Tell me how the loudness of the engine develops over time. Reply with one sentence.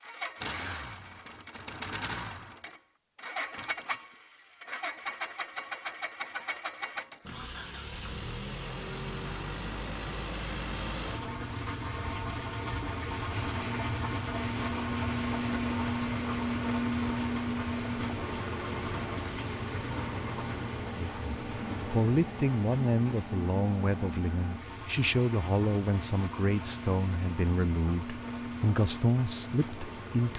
The loudness of the engine goes up, then down.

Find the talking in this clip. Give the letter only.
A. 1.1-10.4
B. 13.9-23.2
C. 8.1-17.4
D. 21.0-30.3
D.